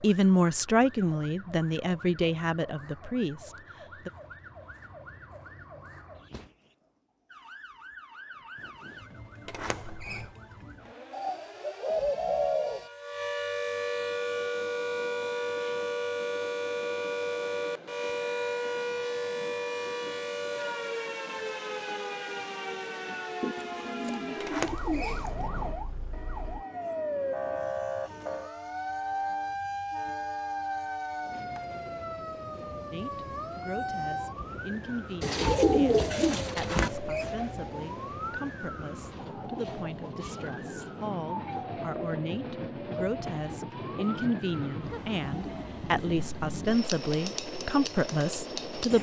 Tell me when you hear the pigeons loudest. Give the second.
36 s.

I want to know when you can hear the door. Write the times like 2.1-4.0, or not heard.
9.4-10.3, 24.4-25.8, 36.5-37.2.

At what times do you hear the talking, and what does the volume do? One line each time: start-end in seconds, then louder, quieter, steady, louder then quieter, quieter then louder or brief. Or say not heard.
0.0-4.1 quieter
32.9-48.9 louder.